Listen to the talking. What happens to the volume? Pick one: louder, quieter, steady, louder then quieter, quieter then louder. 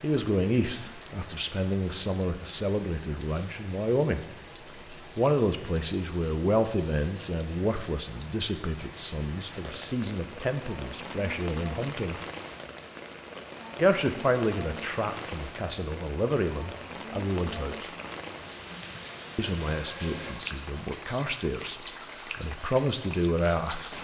steady.